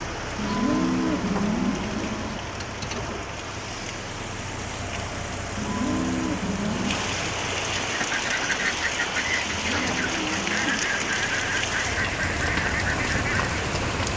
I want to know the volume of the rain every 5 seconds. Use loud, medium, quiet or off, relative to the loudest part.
medium, loud, loud.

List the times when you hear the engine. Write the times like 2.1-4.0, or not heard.
0.0-14.1.